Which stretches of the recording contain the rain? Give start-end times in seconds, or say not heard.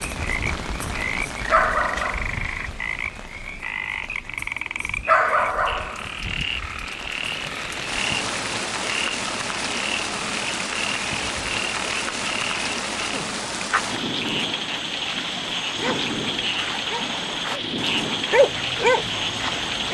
0.0-19.8.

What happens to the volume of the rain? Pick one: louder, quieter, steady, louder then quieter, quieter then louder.
louder.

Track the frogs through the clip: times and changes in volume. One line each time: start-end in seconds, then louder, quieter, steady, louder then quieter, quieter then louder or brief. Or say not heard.
0.0-19.8 steady.